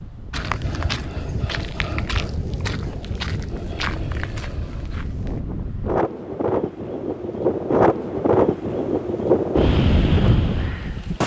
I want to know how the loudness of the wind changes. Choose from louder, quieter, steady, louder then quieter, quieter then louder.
louder.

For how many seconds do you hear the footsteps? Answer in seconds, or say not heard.
5 s.